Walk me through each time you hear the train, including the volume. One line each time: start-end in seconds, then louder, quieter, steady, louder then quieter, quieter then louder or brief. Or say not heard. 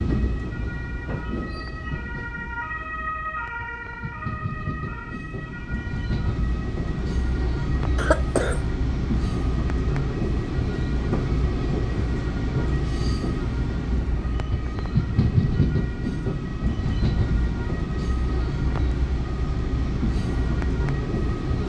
0.0-21.6 louder.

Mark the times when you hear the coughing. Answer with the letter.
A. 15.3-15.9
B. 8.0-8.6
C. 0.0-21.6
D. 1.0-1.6
B.